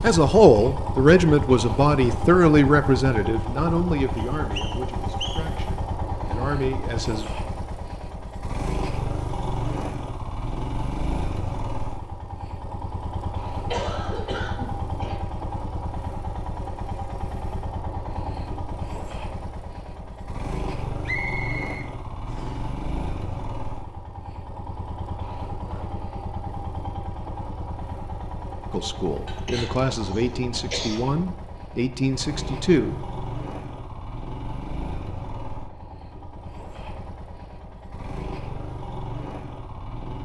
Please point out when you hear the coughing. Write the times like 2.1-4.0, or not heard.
13.7-15.2, 29.2-31.1.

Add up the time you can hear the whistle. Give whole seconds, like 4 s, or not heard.
3 s.